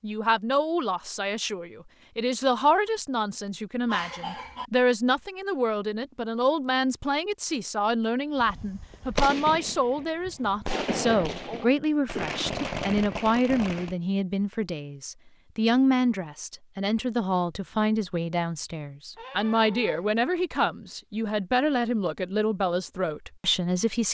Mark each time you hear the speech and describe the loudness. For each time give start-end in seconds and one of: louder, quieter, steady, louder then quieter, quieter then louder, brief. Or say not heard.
0.0-24.0 steady.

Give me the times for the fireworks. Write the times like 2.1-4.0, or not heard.
8.4-13.9.